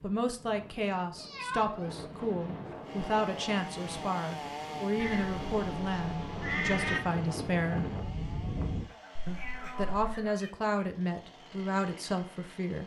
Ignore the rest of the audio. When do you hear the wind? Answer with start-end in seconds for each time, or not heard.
0.0-8.8.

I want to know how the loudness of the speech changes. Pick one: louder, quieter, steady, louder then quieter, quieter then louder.
steady.